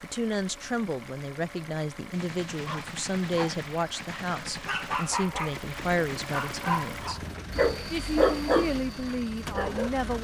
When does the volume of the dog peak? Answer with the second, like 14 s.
8 s.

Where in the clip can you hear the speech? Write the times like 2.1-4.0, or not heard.
0.0-7.2, 7.9-10.2.